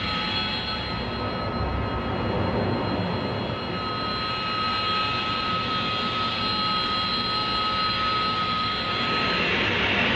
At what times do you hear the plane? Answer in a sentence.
The plane can be heard from 0.0 to 10.1 s.